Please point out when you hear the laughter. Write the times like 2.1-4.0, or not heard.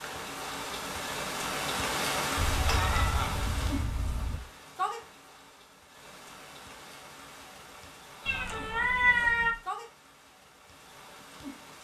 2.6-3.4, 8.2-8.9.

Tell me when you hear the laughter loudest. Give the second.
3 s.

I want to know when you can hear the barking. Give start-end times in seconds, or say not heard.
not heard.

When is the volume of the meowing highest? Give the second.
9 s.